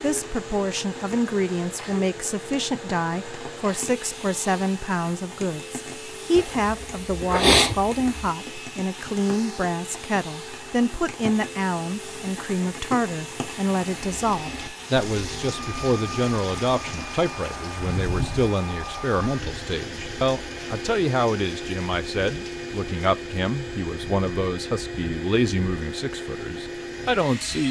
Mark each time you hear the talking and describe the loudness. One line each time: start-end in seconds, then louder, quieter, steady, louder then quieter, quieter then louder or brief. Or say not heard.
0.0-27.6 steady.